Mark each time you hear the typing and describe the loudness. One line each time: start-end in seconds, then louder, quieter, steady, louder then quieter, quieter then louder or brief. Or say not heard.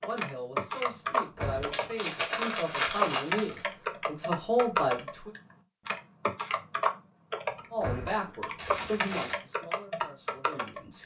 0.0-11.0 steady.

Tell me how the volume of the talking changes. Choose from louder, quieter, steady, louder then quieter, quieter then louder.
louder then quieter.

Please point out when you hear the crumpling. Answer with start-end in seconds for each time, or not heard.
1.4-3.6, 8.6-9.4.